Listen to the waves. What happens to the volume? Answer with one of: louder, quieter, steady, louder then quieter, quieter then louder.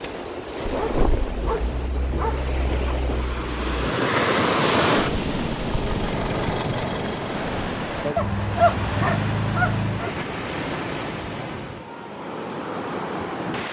louder then quieter.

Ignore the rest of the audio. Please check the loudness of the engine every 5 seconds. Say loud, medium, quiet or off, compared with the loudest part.
medium, loud, off.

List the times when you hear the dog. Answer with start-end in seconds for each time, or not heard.
0.6-3.0, 8.2-10.1.